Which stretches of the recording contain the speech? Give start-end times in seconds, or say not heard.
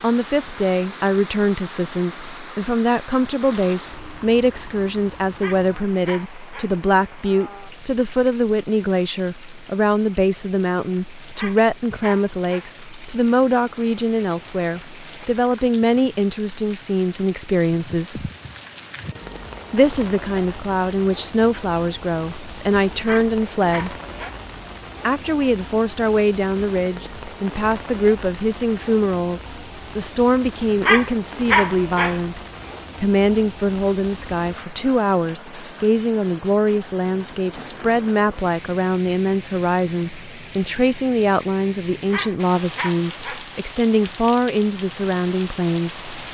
0.0-18.3, 19.7-23.9, 25.0-32.4, 33.0-46.3.